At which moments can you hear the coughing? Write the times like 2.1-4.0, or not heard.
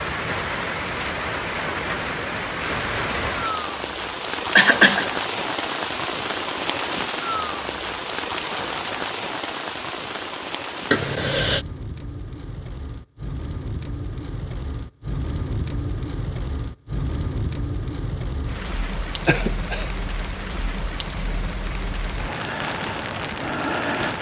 4.5-5.1, 10.9-11.6, 19.2-19.9.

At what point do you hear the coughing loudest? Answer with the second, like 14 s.
5 s.